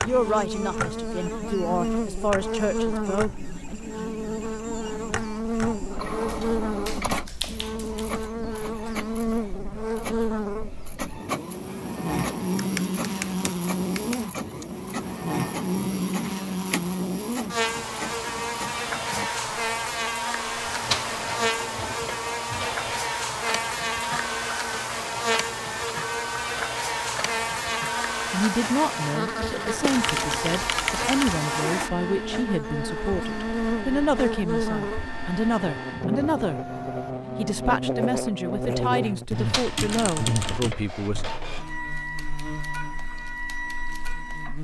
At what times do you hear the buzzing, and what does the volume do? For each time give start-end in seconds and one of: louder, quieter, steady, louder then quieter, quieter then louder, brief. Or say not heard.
0.0-44.5 steady.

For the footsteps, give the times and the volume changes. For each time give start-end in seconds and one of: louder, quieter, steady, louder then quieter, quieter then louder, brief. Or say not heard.
not heard.